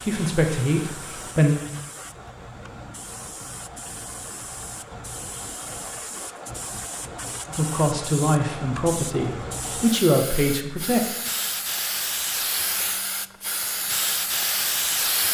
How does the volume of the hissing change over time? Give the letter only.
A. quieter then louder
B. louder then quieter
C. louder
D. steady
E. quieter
C.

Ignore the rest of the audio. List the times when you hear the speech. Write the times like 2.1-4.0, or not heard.
0.0-1.6, 7.5-11.2.